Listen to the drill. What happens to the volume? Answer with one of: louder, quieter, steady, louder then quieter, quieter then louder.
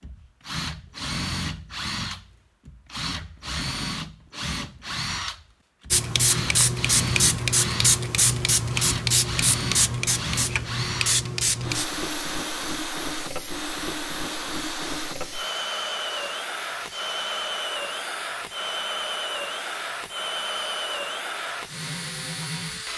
steady.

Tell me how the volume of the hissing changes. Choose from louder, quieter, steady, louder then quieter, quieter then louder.
quieter.